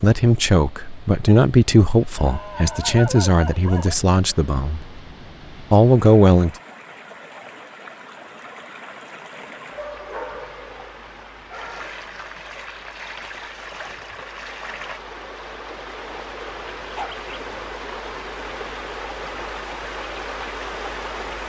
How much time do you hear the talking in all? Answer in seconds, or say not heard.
6 s.